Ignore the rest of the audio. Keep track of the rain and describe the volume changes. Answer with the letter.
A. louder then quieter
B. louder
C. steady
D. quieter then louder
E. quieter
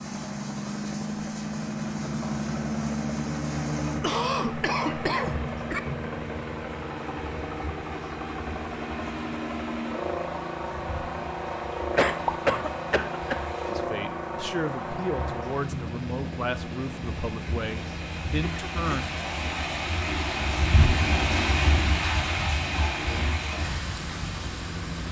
B.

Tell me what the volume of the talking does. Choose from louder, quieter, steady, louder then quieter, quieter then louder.
steady.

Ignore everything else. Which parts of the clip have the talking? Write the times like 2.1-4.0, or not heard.
13.7-19.1.